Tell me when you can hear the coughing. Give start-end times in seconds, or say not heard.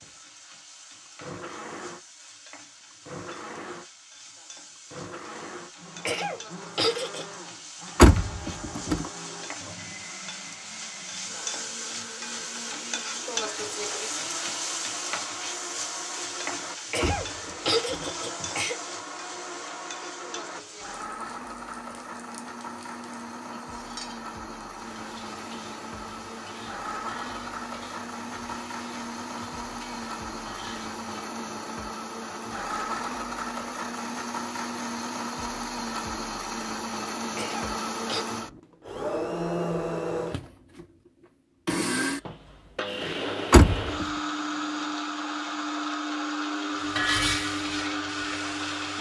6.0-7.2, 16.9-18.8, 37.4-38.2.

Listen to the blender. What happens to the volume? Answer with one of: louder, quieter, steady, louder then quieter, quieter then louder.
louder.